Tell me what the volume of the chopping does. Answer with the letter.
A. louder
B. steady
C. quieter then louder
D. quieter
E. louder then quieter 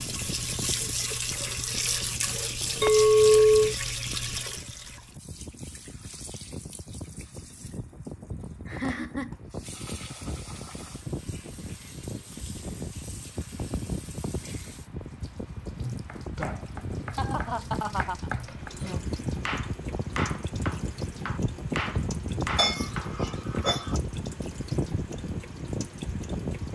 A.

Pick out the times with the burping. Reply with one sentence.
You can't hear the burping here.